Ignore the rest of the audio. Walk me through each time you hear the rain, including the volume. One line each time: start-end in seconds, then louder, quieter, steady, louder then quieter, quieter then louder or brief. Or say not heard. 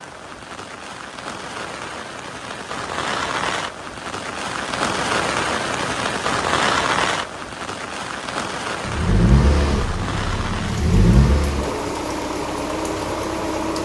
0.0-13.8 louder then quieter.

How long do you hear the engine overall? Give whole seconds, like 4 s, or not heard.
5 s.